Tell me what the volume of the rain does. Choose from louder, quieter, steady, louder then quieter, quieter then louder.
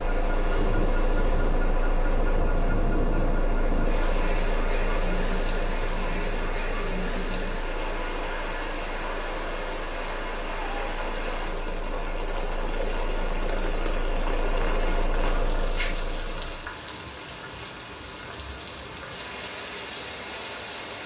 steady.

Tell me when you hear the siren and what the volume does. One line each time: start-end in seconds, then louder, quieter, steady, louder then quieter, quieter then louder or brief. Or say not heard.
not heard.